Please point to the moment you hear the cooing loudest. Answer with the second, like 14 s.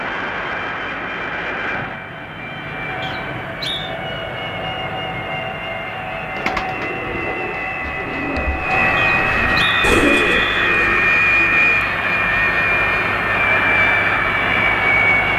10 s.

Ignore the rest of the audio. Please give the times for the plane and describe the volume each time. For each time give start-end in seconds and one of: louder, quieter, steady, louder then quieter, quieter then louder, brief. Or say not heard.
0.0-15.3 louder.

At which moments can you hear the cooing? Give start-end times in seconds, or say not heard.
6.3-11.8.